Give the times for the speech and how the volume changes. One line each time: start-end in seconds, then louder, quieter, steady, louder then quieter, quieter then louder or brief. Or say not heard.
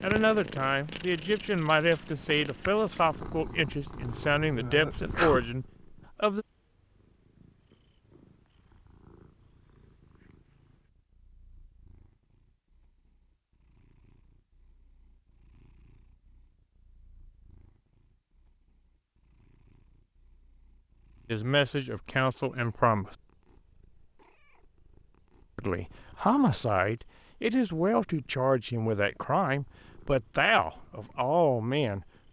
0.0-6.5 steady
21.3-23.1 brief
25.6-32.2 steady.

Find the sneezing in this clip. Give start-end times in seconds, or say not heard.
4.5-5.4.